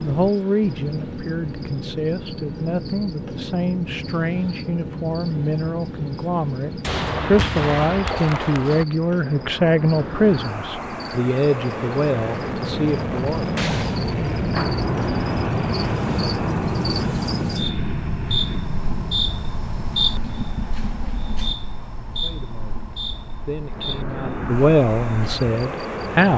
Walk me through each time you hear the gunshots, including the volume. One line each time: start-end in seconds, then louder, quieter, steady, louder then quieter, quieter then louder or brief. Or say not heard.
6.8-8.8 brief
13.6-17.6 steady.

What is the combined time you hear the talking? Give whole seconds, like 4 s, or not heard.
18 s.